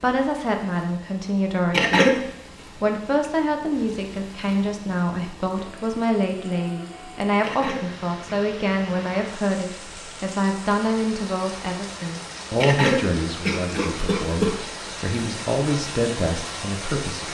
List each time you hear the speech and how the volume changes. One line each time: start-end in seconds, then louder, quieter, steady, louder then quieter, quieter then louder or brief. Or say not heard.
0.0-2.2 brief
2.8-17.2 steady.